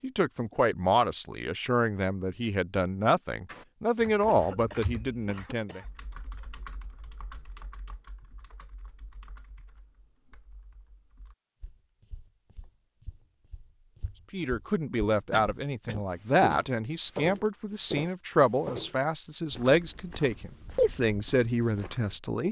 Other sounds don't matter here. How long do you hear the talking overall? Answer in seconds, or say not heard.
14 s.